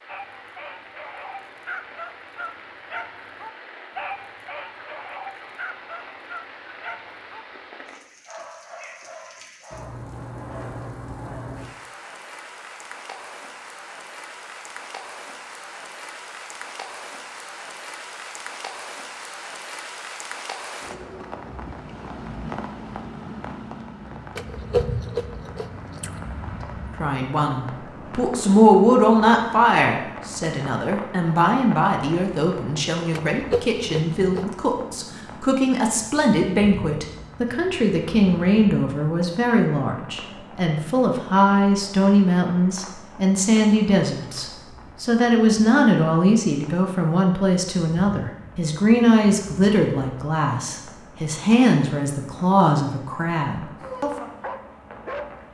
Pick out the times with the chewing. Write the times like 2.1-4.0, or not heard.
24.4-26.2, 33.1-34.5.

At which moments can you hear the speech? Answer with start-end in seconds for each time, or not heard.
27.0-54.2.